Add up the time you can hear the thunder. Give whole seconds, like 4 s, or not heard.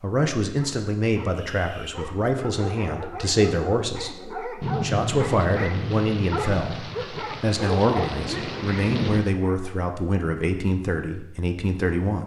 5 s.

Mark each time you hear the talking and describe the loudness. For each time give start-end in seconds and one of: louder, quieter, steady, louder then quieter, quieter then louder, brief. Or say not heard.
0.0-12.2 steady.